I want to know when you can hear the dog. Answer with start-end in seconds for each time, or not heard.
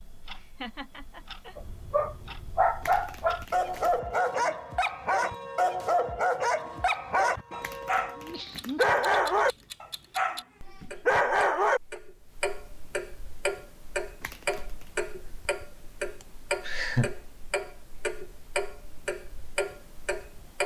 1.6-11.8.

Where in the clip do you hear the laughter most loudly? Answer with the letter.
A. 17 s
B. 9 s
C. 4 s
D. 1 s
A.